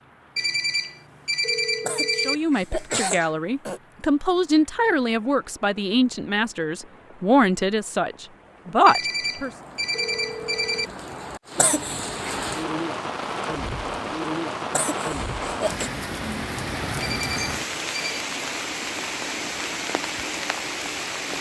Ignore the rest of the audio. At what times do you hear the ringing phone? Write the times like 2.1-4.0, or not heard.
0.3-2.4, 8.8-10.9, 17.0-18.2.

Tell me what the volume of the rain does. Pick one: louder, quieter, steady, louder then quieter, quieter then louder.
louder.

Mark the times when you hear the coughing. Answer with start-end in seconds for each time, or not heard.
1.8-3.8, 11.6-12.3, 14.7-15.9.